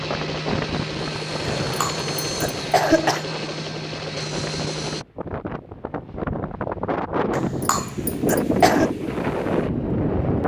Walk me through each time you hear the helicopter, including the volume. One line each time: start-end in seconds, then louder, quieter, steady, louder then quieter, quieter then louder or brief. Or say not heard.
0.0-5.0 steady.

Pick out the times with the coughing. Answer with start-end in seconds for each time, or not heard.
1.6-3.2, 7.3-8.9.